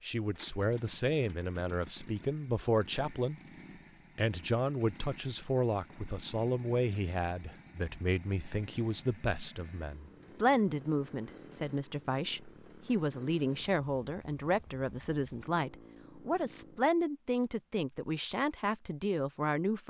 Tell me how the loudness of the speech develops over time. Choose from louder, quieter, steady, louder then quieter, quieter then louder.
steady.